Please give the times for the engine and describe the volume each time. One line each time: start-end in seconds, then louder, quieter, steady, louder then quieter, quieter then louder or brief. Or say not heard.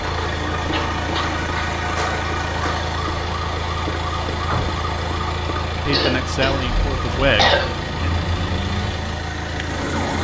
0.0-10.1 steady.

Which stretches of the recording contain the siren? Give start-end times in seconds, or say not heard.
0.0-10.1.